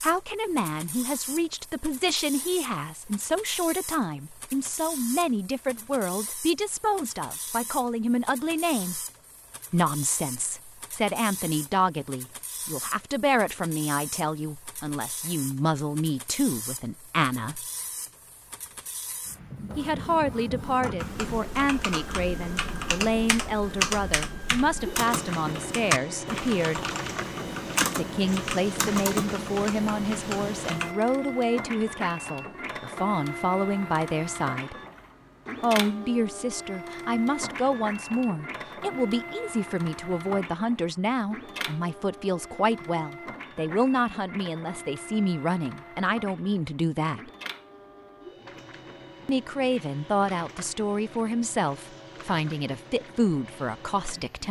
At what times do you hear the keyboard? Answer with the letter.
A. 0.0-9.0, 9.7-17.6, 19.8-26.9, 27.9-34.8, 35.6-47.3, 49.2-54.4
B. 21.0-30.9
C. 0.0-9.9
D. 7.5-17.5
B.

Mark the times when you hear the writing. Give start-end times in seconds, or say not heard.
not heard.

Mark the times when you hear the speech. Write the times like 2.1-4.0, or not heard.
0.0-9.0, 9.7-17.6, 19.8-26.9, 27.9-34.8, 35.6-47.3, 49.2-54.4.